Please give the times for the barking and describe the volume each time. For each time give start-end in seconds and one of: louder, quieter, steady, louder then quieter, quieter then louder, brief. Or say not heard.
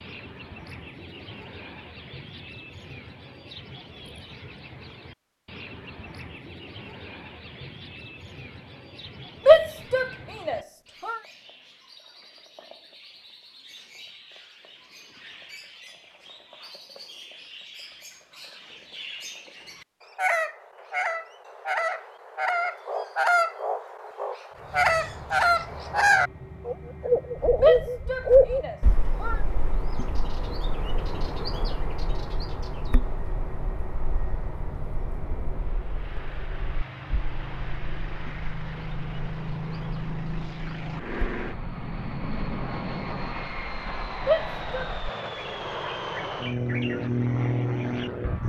not heard.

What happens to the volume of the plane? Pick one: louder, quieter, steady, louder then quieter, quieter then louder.
louder.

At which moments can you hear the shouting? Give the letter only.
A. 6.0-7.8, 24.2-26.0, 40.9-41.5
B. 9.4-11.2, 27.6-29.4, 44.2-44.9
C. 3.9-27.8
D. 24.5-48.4
B.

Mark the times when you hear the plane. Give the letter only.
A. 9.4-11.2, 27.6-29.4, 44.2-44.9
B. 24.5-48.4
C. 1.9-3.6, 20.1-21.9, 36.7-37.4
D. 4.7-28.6
B.